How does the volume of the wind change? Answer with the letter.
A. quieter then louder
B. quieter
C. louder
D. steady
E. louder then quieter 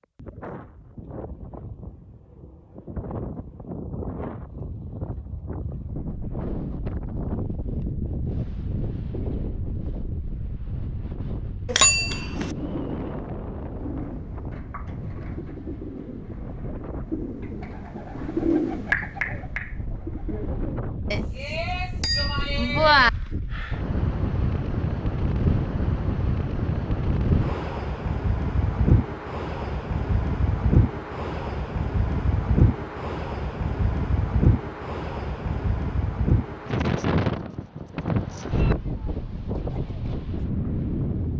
C.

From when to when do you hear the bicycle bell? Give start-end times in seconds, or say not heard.
11.7-12.5, 21.1-23.1.